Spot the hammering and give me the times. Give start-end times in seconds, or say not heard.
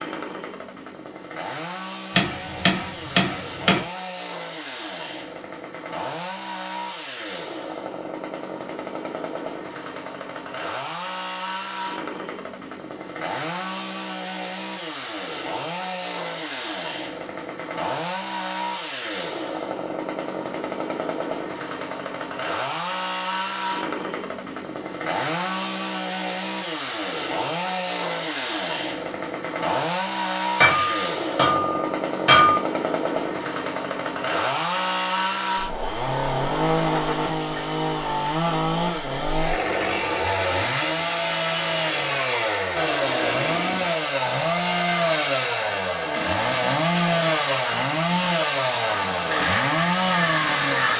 2.1-3.8, 30.6-32.6.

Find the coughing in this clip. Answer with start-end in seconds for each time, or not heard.
not heard.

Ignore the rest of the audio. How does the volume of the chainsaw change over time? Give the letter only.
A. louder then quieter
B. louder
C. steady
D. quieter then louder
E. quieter
B.